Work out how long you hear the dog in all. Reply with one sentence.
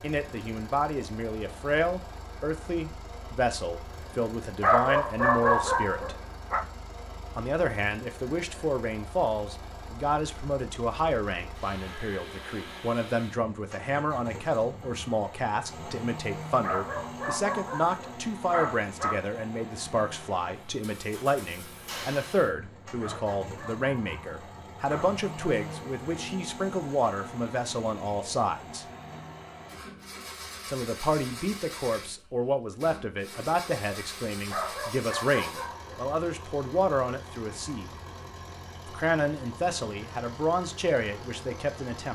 The dog can be heard for 8 seconds in total.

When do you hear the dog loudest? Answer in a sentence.
The loudest moment of the dog is at 5 seconds.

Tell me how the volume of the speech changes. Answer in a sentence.
The loudness of the speech stays about the same.